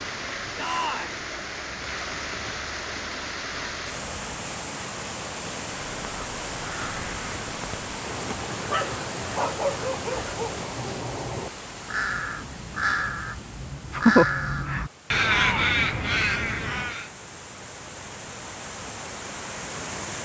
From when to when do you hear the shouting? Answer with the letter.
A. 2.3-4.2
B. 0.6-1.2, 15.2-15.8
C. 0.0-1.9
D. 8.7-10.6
B.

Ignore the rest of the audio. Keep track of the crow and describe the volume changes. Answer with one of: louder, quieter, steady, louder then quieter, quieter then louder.
louder.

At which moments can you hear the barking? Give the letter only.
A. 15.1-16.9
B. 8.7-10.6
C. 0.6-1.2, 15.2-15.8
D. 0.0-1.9
B.